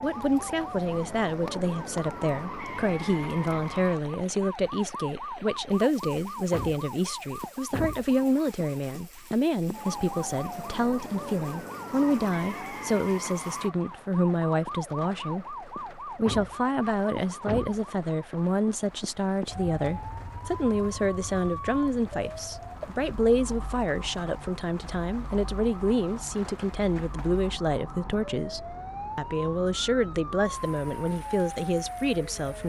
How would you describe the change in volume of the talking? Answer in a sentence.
The volume of the talking stays about the same.